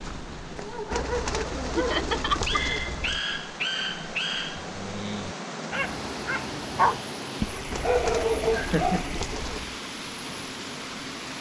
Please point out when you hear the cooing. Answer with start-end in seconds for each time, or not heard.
0.9-3.2, 7.7-9.8.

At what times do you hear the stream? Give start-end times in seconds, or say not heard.
0.0-11.3.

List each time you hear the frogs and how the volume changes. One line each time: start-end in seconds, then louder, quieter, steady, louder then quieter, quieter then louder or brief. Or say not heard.
not heard.